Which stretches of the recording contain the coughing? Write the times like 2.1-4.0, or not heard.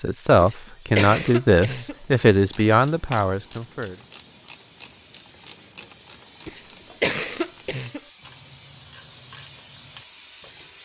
0.4-1.9, 6.5-8.0.